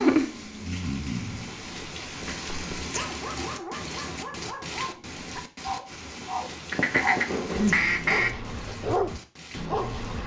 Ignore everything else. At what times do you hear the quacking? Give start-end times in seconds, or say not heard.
6.7-8.3.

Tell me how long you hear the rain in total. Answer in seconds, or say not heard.
10 s.